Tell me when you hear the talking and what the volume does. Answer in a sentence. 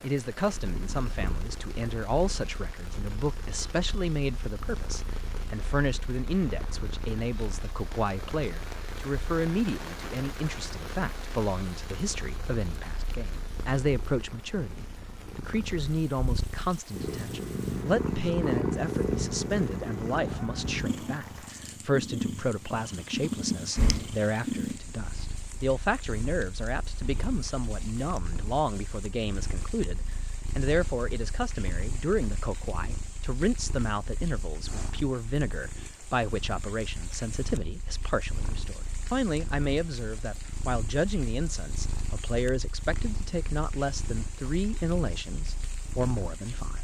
You can hear the talking from 0.0 to 46.7 s, at a steady volume.